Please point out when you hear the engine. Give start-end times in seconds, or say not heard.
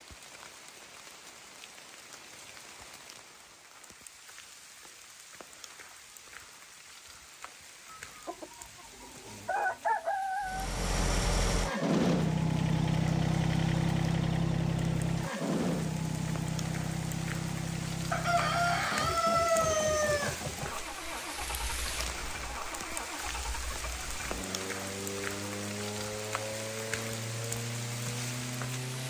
10.4-29.0.